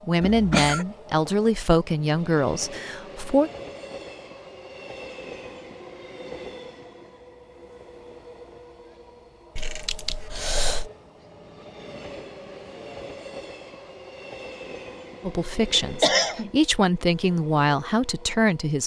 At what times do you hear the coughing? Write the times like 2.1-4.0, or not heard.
0.2-0.8, 9.6-10.9, 16.0-16.5.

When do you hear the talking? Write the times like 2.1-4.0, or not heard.
0.1-3.5, 15.2-18.8.